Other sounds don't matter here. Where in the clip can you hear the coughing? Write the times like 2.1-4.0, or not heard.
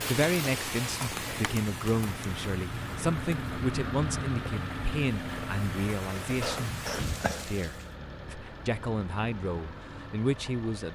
6.4-7.5.